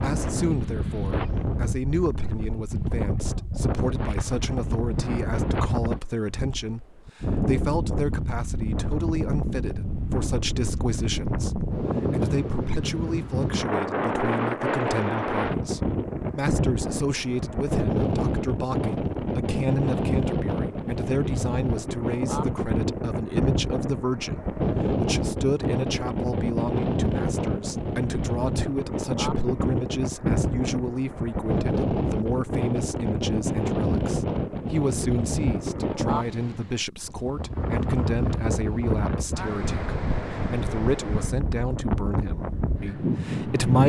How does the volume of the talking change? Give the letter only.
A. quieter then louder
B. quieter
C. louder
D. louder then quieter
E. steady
E.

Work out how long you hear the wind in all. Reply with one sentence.
The wind can be heard for 44 seconds in total.